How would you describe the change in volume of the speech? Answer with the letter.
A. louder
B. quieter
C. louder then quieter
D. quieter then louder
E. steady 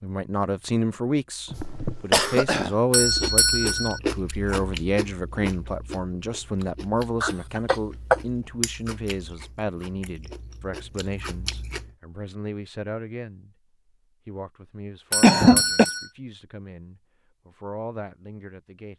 B.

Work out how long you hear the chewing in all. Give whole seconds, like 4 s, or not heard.
9 s.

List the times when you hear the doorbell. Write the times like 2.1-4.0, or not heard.
2.9-4.0, 15.1-16.1.